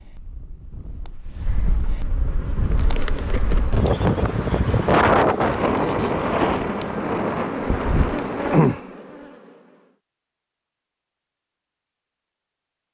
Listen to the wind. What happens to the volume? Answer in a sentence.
The loudness of the wind goes up, then down.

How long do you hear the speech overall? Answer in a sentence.
The speech can't be heard in this clip.